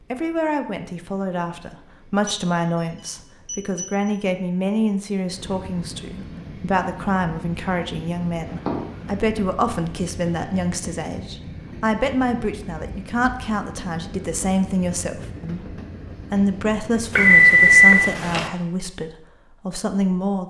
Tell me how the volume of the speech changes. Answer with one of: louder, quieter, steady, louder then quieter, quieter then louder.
steady.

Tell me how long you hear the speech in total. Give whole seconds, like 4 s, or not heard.
20 s.